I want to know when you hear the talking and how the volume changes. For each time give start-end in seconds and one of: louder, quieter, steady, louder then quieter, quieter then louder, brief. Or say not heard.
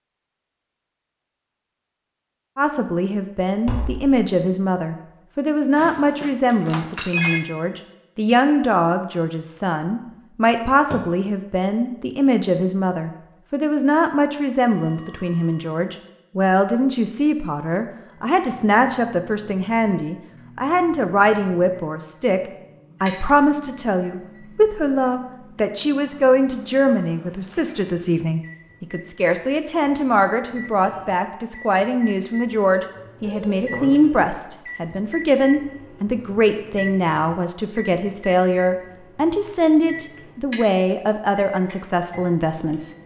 2.5-42.9 steady.